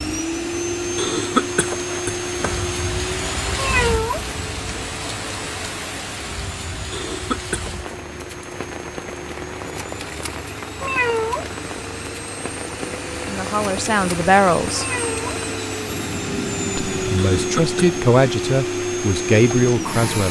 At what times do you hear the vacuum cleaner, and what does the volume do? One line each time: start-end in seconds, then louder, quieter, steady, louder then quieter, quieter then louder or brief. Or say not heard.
0.0-20.2 quieter then louder.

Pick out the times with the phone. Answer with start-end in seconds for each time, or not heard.
not heard.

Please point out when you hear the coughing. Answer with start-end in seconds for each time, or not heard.
0.9-2.8, 6.9-7.9, 17.1-17.8.